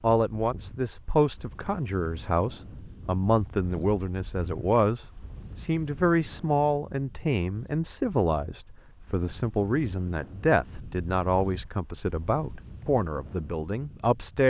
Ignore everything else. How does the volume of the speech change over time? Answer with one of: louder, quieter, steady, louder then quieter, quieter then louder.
steady.